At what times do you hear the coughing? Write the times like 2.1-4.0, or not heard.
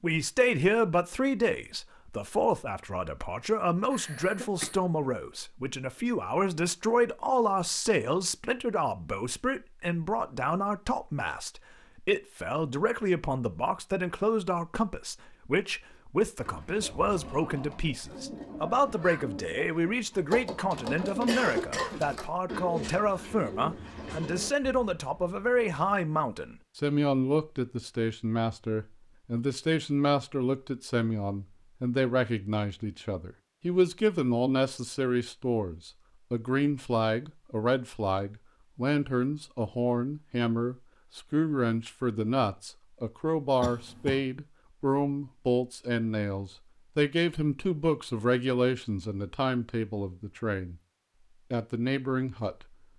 3.9-4.8, 21.2-22.1, 43.6-44.2.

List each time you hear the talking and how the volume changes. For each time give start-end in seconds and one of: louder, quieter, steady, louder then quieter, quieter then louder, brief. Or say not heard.
0.0-50.8 steady
51.5-52.6 brief.